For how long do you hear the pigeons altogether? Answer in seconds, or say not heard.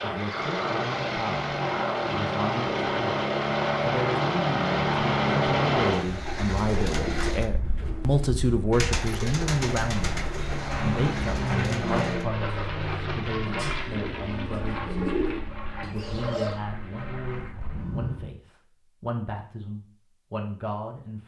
11 s.